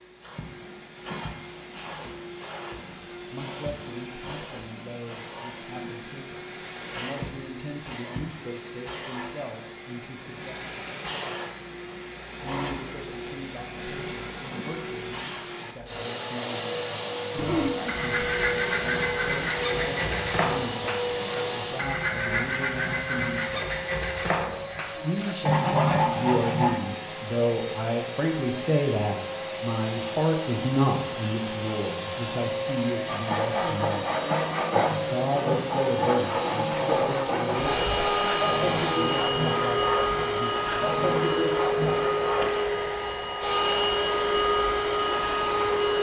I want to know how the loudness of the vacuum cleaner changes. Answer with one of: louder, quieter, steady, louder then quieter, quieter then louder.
louder.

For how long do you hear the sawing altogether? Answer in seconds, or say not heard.
19 s.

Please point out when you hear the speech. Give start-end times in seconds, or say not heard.
2.8-10.7, 12.4-23.8, 25.0-34.1, 34.9-41.0.